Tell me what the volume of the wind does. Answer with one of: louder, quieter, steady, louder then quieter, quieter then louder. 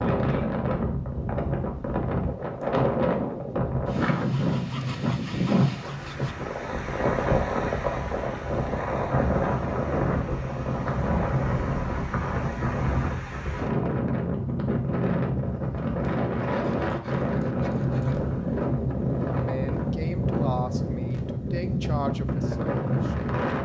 steady.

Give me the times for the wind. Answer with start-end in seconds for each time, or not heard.
0.0-23.6.